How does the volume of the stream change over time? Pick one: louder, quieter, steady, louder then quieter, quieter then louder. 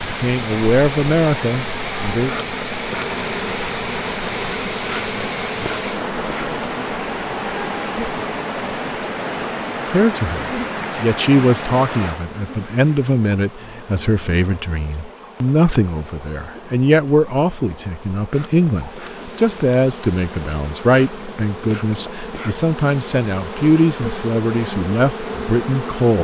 quieter.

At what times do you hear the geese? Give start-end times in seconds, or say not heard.
not heard.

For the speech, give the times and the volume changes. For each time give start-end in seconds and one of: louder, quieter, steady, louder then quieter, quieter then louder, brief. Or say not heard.
0.0-2.3 brief
9.8-26.2 steady.